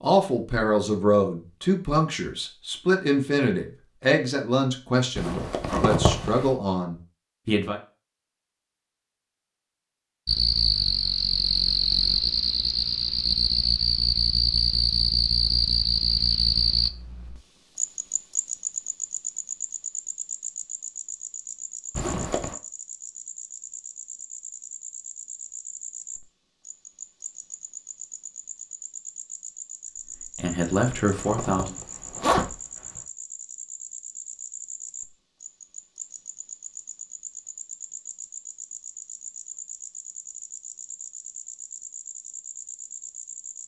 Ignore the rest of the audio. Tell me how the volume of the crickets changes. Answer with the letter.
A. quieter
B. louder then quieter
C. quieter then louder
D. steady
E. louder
A.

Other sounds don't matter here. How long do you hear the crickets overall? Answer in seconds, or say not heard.
33 s.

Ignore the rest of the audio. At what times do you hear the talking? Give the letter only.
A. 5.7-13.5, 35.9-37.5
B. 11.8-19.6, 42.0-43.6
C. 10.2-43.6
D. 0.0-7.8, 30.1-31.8
D.